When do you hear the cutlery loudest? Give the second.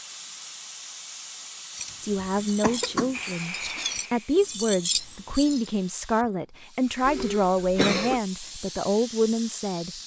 5 s.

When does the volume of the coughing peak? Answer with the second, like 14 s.
8 s.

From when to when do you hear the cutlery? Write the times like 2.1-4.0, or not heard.
1.7-5.7.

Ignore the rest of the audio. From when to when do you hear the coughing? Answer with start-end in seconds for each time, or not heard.
1.9-3.2, 7.0-8.2.